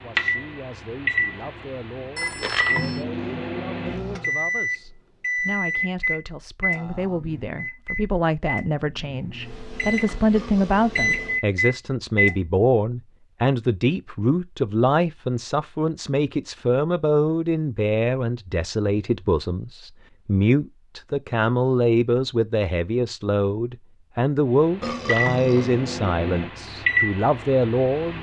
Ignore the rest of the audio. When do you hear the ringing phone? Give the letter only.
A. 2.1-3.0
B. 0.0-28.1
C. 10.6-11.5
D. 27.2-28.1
A.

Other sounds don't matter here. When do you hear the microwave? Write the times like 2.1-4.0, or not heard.
0.0-12.4, 24.6-28.1.